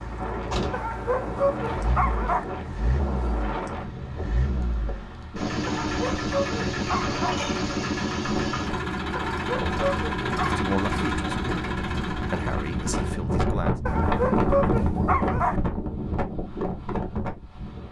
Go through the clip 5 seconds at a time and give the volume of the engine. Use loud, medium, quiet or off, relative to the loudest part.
medium, loud, loud, off.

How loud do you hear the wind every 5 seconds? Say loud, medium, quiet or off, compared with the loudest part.
medium, medium, loud, loud.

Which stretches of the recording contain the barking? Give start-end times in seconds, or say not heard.
0.7-2.5, 5.7-7.4, 9.2-10.6, 13.8-15.6.